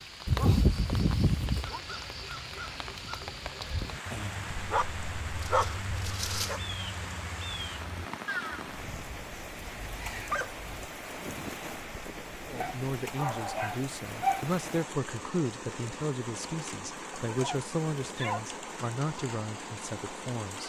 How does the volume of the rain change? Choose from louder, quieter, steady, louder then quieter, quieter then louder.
steady.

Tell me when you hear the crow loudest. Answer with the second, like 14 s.
8 s.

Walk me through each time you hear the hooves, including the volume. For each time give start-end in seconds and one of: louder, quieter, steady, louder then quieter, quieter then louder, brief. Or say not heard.
not heard.